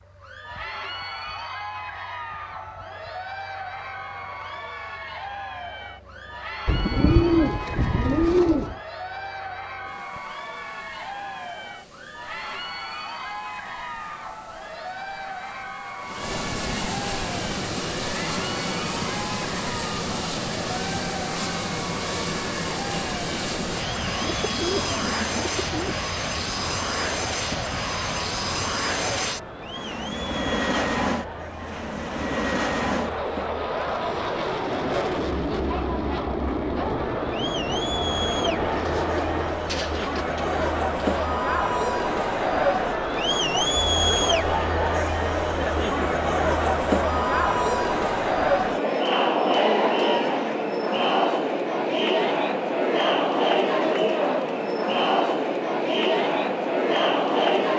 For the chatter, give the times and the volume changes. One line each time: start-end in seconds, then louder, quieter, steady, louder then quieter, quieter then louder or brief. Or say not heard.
0.1-57.7 louder.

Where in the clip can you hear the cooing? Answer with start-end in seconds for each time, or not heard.
6.7-8.8, 23.9-25.9, 38.7-41.3.